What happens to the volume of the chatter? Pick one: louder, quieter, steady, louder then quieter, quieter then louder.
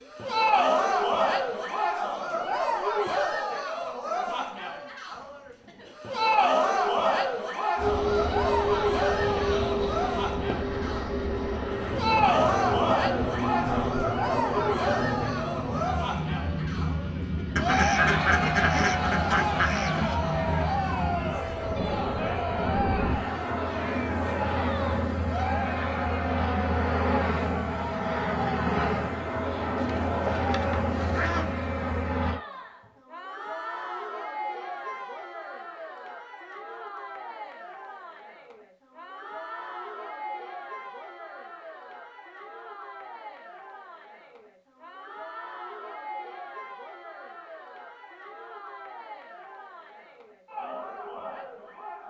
quieter.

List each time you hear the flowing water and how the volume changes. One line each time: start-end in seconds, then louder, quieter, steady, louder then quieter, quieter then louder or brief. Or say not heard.
not heard.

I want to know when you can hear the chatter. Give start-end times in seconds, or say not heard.
0.0-52.0.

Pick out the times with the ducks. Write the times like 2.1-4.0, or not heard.
17.6-20.2, 29.8-31.6.